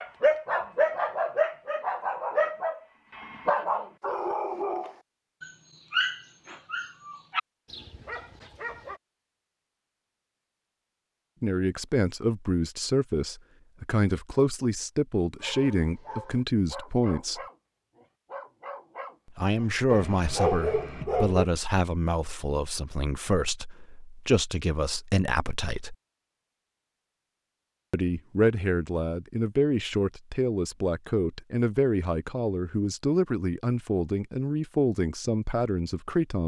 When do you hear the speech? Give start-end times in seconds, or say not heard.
11.4-17.4, 19.4-25.9, 27.9-36.4.